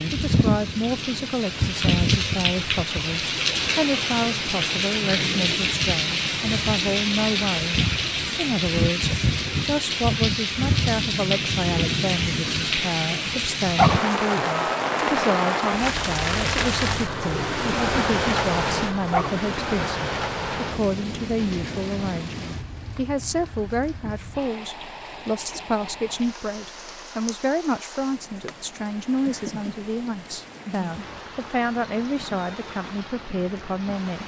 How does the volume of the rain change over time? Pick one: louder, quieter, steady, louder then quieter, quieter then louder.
quieter.